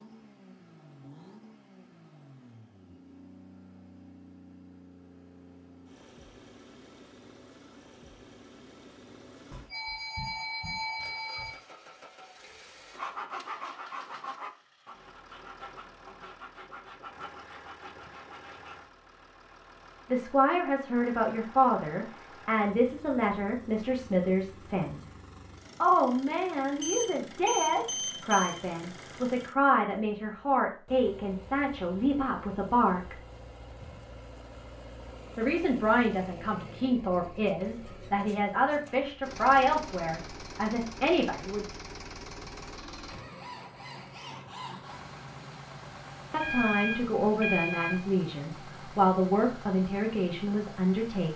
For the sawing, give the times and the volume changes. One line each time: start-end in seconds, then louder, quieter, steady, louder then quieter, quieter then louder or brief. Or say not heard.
12.9-18.8 quieter.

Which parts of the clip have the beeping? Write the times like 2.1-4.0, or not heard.
9.5-11.6, 26.8-28.6, 46.4-48.0.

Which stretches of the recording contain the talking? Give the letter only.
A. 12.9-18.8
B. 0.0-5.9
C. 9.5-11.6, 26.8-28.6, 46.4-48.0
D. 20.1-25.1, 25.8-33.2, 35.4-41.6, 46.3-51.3
D.